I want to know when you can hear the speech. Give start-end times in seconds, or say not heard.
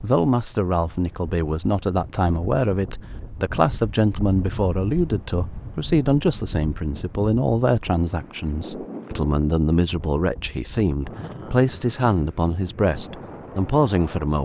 0.0-14.3.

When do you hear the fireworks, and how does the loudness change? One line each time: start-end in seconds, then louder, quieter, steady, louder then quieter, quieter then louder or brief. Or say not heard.
not heard.